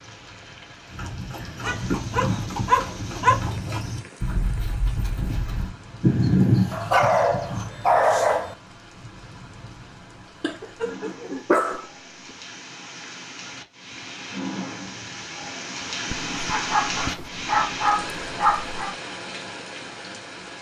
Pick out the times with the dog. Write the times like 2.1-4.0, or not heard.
1.6-3.5, 6.7-8.6, 10.4-11.8, 16.1-18.9.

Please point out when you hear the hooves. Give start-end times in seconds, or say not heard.
0.8-7.7.